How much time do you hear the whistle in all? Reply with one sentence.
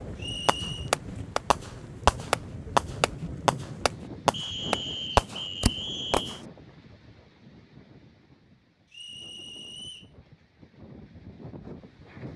The whistle can be heard for 4 seconds in total.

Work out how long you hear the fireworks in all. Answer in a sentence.
The fireworks can be heard for 6 seconds in total.